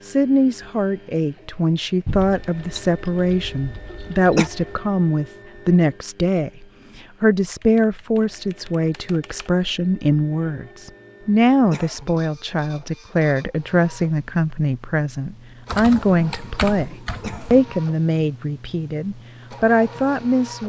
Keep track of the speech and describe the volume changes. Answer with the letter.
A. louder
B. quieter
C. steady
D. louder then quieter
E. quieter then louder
C.